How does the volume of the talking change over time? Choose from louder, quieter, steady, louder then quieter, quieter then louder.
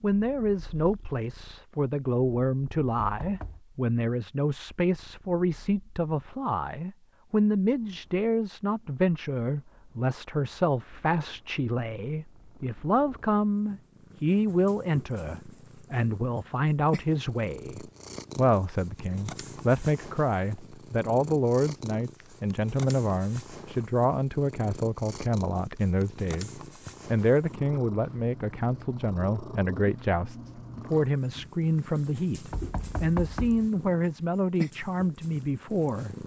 steady.